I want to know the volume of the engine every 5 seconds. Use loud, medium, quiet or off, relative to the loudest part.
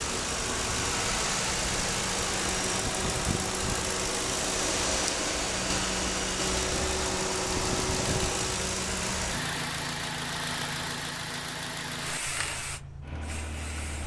loud, loud, medium.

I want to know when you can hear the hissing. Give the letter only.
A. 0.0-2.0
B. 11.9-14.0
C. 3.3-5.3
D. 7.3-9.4
B.